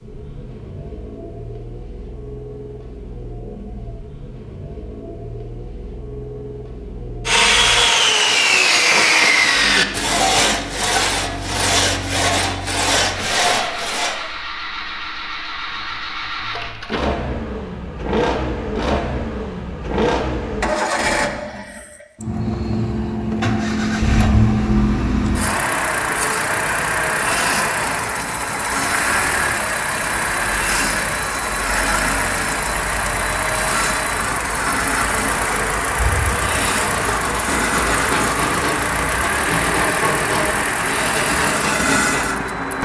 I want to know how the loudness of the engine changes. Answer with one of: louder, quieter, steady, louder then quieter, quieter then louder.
louder.